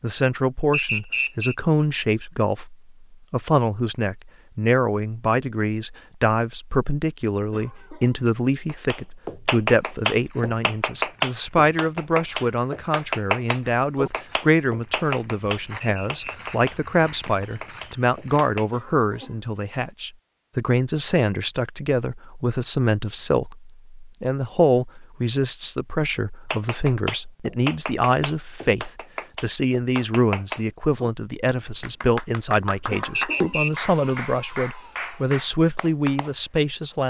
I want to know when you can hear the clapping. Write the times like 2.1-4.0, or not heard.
8.7-18.6, 26.5-36.4.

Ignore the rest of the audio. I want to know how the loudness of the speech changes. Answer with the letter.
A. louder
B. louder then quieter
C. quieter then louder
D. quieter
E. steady
E.